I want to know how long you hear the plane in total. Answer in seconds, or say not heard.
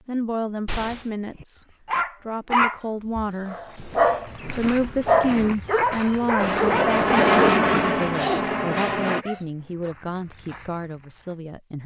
3 s.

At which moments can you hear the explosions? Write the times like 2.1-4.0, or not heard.
0.7-1.1.